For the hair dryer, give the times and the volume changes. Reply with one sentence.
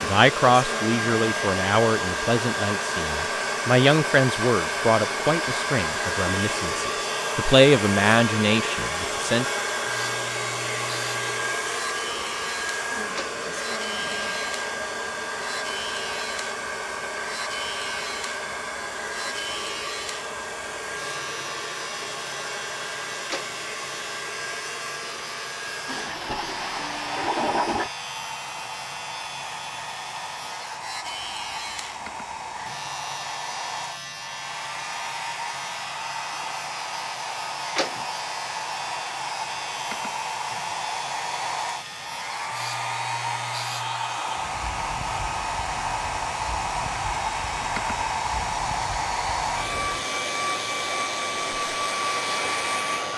You can hear the hair dryer from 0.0 to 53.1 s, getting quieter then louder.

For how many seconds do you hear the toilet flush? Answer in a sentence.
The toilet flush can be heard for 2 seconds in total.